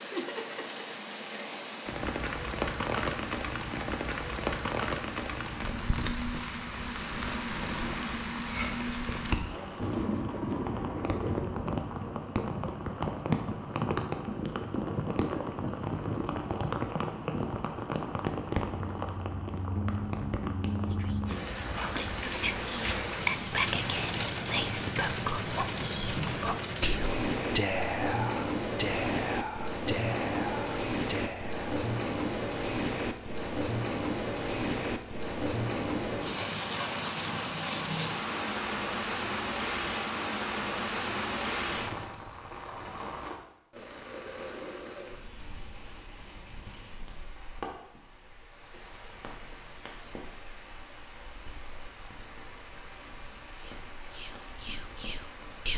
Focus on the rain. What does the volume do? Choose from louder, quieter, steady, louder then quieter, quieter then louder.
quieter.